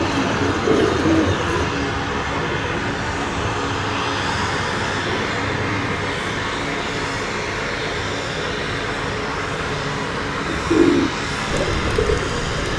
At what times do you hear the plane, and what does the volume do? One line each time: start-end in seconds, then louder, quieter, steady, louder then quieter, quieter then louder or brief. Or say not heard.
0.0-12.7 steady.